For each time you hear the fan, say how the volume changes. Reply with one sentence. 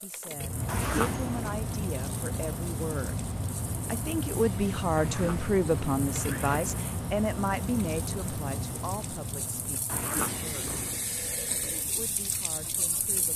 You can hear the fan from 0.0 to 13.3 s, getting quieter.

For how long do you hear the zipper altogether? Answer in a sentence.
The zipper can be heard for 4 seconds in total.